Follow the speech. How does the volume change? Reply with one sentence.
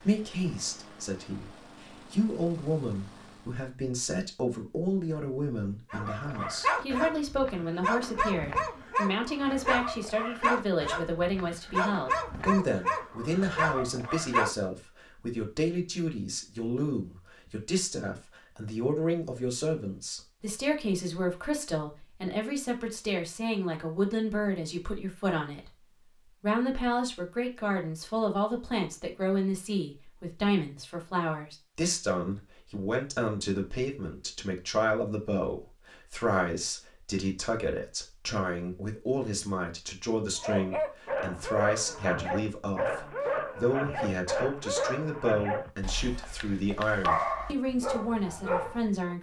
The volume of the speech stays about the same.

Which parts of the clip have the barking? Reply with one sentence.
The barking can be heard from 5.9 to 14.6 s and from 40.4 to 49.1 s.